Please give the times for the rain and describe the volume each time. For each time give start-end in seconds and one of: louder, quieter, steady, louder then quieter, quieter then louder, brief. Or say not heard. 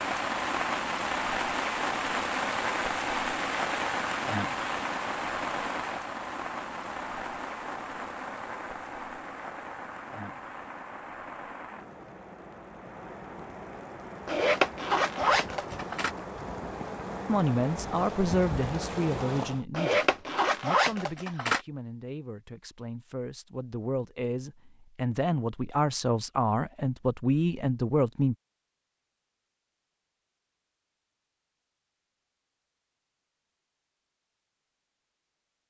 0.0-19.6 quieter then louder.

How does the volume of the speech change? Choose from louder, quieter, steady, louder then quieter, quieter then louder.
quieter then louder.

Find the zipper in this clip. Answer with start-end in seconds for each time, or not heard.
14.2-16.1, 19.7-21.6.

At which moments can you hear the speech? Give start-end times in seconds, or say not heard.
17.2-28.4.